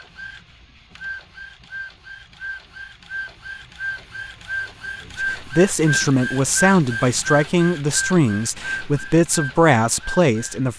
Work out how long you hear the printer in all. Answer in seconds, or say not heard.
11 s.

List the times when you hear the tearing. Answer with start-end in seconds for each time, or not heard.
not heard.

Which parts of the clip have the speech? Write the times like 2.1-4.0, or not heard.
5.2-10.7.